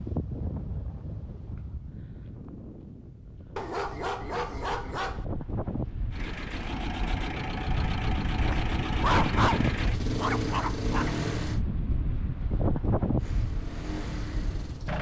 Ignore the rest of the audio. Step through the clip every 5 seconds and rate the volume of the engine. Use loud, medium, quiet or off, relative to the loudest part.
off, loud, loud.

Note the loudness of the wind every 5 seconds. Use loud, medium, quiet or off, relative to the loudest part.
medium, loud, loud.